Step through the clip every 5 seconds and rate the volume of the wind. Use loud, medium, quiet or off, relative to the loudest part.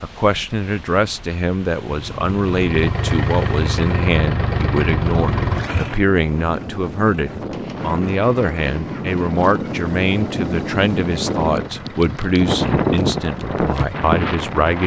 quiet, medium, loud.